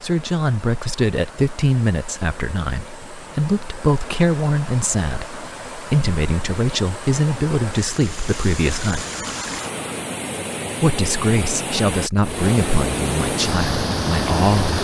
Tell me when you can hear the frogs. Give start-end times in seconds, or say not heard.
not heard.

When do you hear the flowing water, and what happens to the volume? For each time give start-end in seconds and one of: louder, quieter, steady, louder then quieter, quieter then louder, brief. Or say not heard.
0.0-14.7 louder.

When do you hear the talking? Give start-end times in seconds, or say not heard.
0.0-9.1, 10.8-14.7.